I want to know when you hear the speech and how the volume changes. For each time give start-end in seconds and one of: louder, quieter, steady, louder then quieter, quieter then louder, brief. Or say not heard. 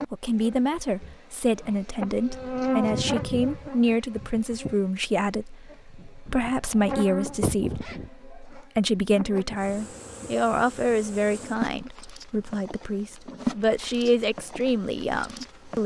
0.1-15.8 steady.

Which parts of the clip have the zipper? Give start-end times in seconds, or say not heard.
6.2-8.1.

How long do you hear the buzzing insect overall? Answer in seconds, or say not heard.
16 s.